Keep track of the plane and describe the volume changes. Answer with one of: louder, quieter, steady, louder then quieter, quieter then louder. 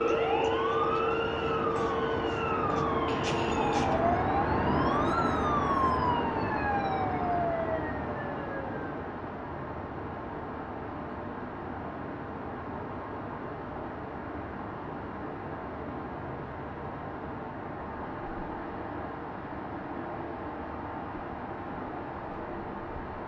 quieter.